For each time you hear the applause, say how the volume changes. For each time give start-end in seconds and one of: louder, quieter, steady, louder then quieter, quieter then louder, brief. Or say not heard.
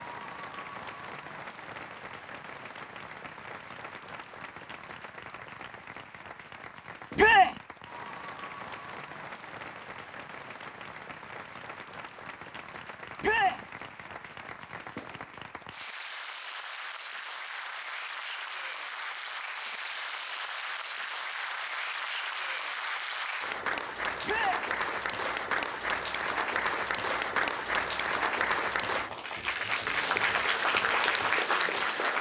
0.0-32.1 louder.